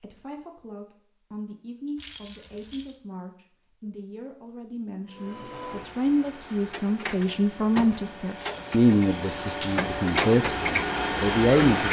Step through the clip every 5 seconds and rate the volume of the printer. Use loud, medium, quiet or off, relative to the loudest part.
off, medium, loud.